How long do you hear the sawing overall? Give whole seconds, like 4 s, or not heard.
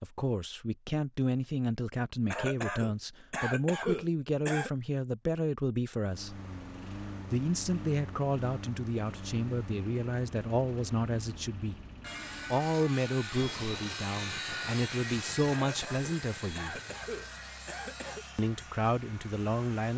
8 s.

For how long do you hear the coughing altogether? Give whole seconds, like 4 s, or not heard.
5 s.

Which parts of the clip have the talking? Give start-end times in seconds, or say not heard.
0.0-6.4, 7.2-11.8, 12.5-16.8, 18.4-19.9.